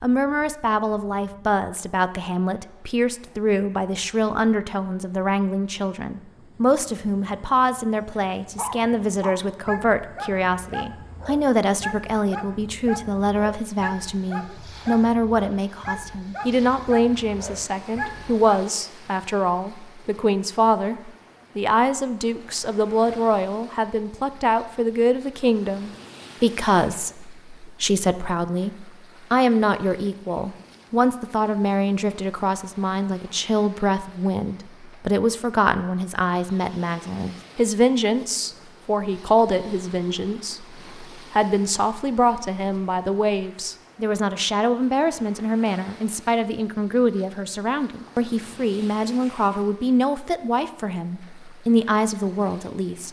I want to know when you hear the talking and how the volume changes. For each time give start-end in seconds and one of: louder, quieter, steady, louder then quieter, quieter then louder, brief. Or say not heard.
0.0-53.0 steady.